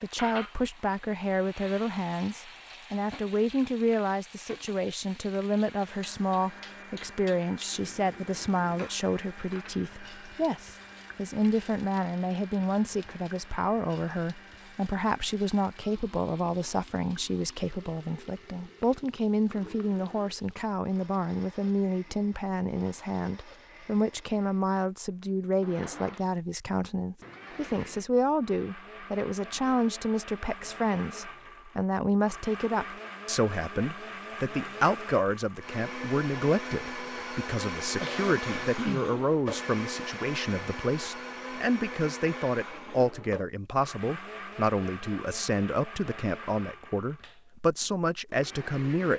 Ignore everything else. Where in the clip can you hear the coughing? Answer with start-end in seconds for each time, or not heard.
37.9-39.1.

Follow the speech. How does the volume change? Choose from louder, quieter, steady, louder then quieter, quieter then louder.
steady.